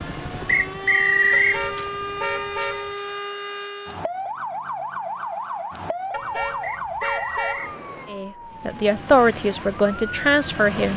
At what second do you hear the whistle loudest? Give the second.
1 s.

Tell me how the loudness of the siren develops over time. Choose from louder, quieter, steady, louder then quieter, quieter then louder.
quieter.